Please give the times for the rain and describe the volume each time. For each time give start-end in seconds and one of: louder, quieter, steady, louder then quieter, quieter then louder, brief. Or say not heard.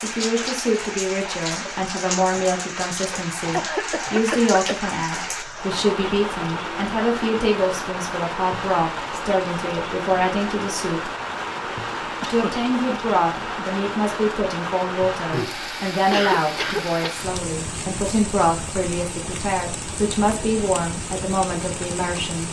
0.0-22.4 steady.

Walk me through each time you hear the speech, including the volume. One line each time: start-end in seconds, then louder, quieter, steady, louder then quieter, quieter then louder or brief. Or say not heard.
0.0-11.1 steady
12.2-22.4 steady.